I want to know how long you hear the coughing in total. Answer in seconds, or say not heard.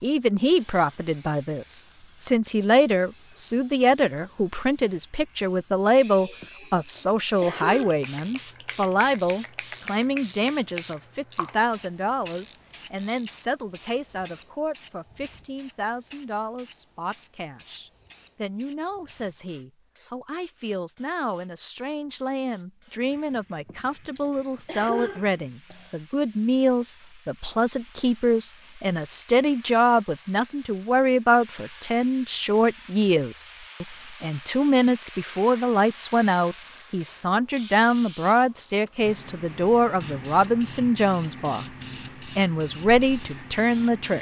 4 s.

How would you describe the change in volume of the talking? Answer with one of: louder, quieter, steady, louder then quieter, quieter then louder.
quieter then louder.